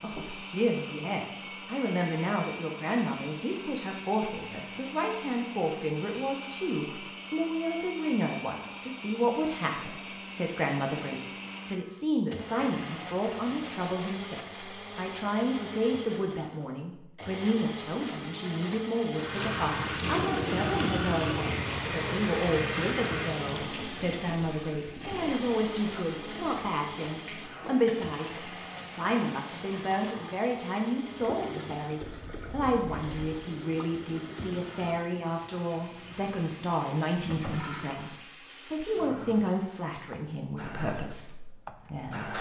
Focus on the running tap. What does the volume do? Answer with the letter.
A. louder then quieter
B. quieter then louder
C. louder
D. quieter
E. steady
D.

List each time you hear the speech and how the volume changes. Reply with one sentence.
The speech can be heard from 0.0 to 42.3 s, at a steady volume.